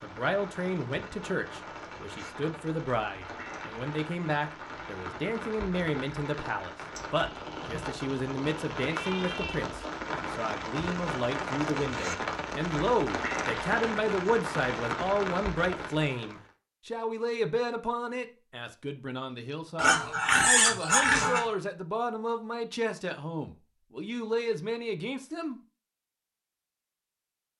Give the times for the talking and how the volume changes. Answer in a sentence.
The talking can be heard from 0.0 to 25.6 s, at a steady volume.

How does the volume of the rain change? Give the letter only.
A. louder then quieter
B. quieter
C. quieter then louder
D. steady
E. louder
E.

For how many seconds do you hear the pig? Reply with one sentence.
You can hear the pig for 2 seconds altogether.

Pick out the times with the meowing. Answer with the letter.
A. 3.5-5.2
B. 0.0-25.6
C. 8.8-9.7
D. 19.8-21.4
C.